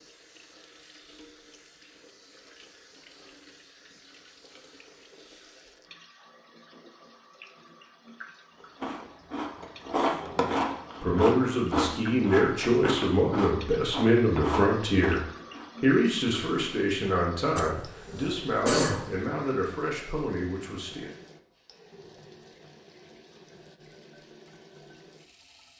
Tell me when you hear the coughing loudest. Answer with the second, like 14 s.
19 s.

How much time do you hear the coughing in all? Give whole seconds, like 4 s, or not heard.
2 s.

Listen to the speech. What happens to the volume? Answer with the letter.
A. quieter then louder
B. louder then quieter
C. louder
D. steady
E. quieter
E.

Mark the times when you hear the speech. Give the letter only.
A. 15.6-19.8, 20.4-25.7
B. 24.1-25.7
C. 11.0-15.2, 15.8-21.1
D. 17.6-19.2
C.